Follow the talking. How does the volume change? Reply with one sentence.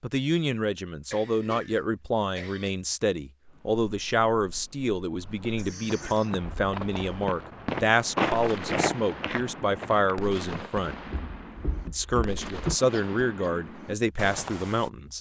The volume of the talking stays about the same.